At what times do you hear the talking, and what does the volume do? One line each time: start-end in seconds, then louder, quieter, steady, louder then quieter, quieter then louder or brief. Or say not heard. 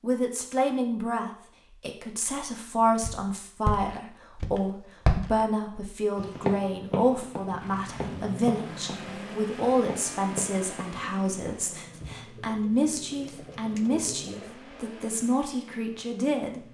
0.0-16.6 steady.